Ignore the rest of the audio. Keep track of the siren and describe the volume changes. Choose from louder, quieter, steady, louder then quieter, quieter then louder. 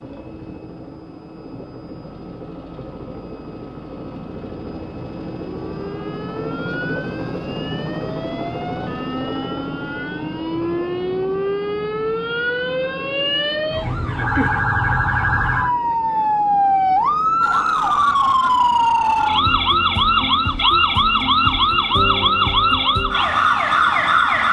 louder.